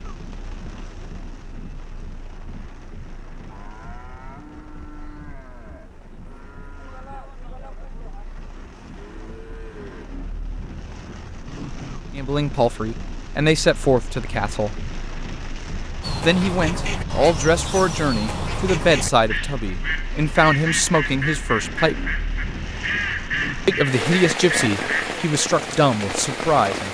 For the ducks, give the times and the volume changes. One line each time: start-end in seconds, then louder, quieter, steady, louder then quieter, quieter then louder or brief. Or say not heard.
16.0-25.2 steady.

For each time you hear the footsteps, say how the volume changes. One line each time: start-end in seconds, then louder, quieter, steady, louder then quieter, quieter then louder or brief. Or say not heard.
not heard.